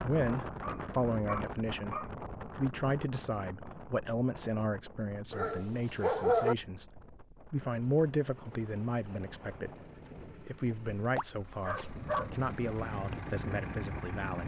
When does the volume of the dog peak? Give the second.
6 s.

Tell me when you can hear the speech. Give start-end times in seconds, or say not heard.
0.0-14.4.